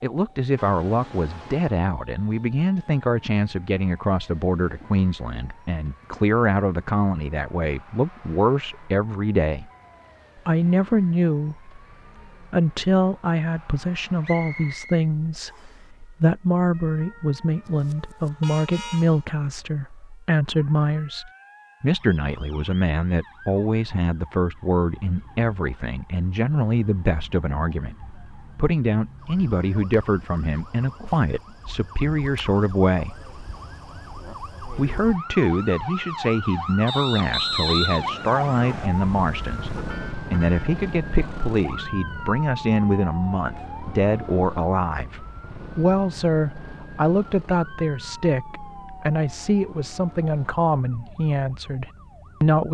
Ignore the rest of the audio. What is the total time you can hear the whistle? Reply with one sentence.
You can hear the whistle for 4 seconds altogether.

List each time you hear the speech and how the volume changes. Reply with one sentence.
The speech can be heard from 0.0 to 9.7 s, at a steady volume; briefly from 10.4 to 11.7 s; from 12.4 to 33.1 s, at a steady volume; and from 34.8 to 52.7 s, at a steady volume.